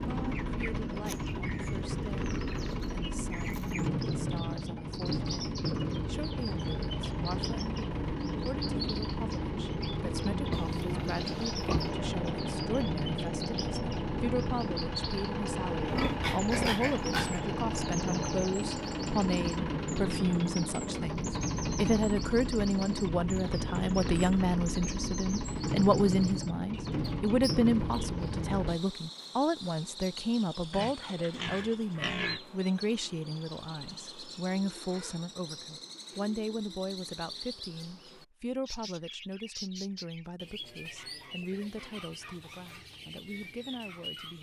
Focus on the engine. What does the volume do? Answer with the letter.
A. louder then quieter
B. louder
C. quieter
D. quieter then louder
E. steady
E.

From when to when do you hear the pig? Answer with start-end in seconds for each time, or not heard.
10.5-11.9, 15.8-17.4, 30.7-32.4.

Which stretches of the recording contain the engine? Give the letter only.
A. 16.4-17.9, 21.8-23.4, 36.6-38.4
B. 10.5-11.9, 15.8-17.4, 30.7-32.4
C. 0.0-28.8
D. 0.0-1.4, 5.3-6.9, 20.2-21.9
C.